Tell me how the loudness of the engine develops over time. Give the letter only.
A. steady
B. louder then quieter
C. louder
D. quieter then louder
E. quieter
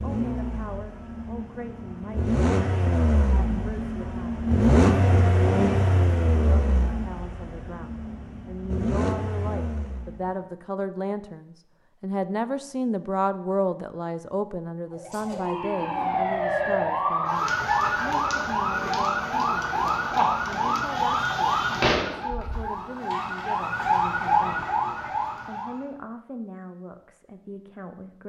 B.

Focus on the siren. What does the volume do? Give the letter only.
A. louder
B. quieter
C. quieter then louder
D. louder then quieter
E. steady
E.